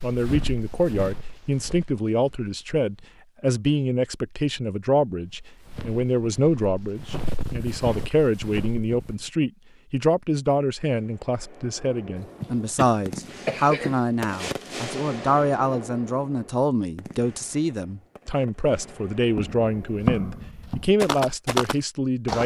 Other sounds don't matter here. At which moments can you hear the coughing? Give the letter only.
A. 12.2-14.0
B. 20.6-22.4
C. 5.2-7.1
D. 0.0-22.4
A.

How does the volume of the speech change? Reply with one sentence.
The loudness of the speech stays about the same.